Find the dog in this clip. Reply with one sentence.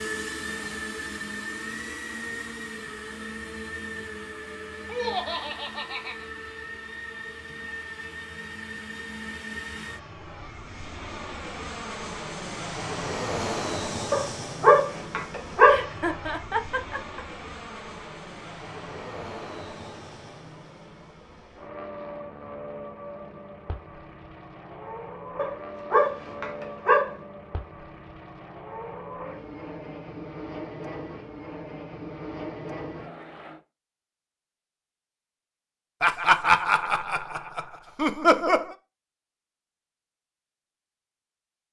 You can hear the dog from 14.1 to 15.8 s and from 25.4 to 27.1 s.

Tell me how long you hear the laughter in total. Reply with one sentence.
You can hear the laughter for 6 seconds altogether.